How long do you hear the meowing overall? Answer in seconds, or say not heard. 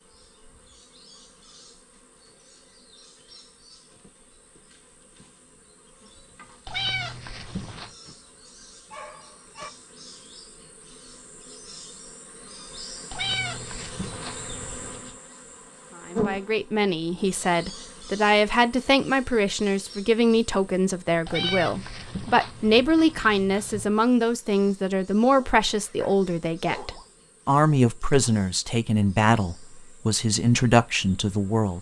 6 s.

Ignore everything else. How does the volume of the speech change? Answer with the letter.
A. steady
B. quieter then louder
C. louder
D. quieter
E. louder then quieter
A.